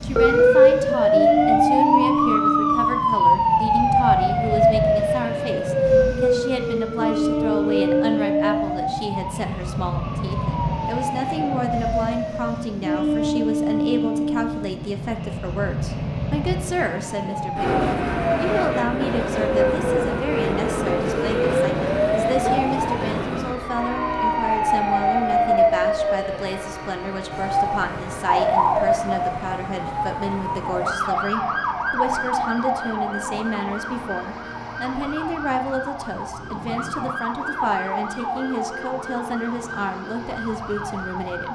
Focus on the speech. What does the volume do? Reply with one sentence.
The volume of the speech stays about the same.